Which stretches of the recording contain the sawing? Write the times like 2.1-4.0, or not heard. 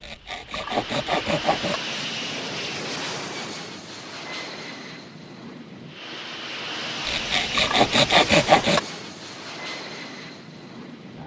0.0-1.8, 7.0-8.8.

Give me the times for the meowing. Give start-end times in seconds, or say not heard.
not heard.